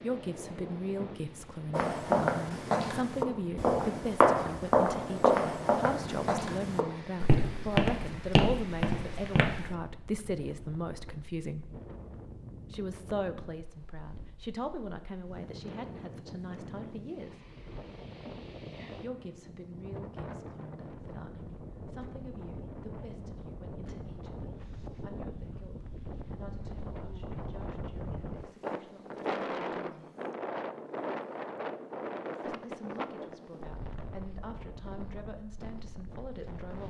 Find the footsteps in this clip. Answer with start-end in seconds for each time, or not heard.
1.7-9.8.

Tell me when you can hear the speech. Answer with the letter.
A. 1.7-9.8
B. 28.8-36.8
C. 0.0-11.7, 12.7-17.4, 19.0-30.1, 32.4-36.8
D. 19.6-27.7
C.